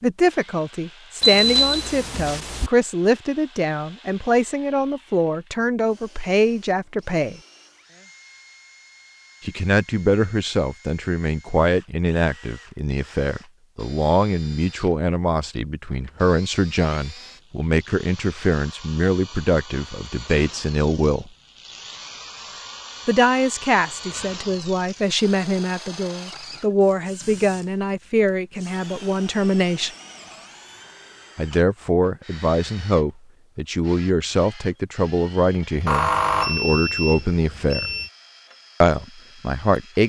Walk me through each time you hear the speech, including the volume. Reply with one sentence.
You can hear the speech from 0.0 to 7.4 s, at a steady volume; from 9.4 to 21.3 s, at a steady volume; from 23.1 to 29.9 s, at a steady volume; from 31.4 to 37.9 s, at a steady volume; and briefly from 38.8 to 40.0 s.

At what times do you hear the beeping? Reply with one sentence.
The beeping can be heard from 1.2 to 2.7 s and from 35.9 to 38.1 s.